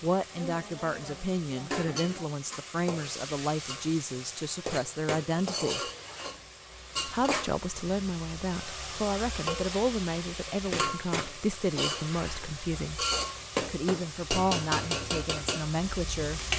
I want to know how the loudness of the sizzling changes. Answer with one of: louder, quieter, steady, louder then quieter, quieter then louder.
louder.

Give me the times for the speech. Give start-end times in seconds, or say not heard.
0.0-5.8, 7.0-13.1, 13.7-16.5.